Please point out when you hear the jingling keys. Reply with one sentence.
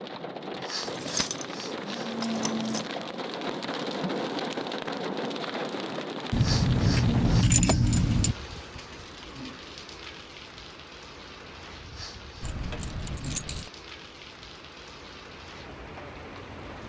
You can hear the jingling keys from 0.8 to 2.9 s, from 6.3 to 8.3 s and from 12.4 to 13.7 s.